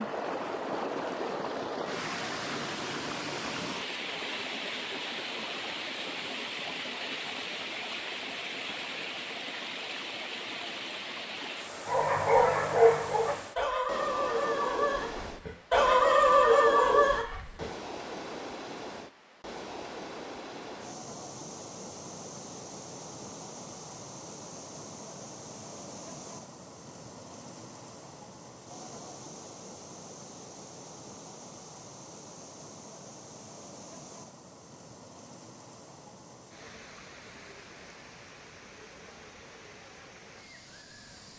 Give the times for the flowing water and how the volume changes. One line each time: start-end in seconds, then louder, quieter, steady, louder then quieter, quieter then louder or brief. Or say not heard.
0.0-41.3 quieter.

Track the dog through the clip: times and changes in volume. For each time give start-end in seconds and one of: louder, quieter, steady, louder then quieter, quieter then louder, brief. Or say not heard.
11.8-17.6 quieter then louder.